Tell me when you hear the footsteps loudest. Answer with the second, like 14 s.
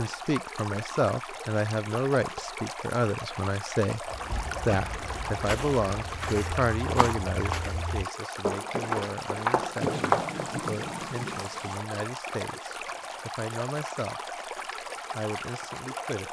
10 s.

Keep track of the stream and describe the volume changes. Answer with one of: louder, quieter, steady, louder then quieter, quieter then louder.
steady.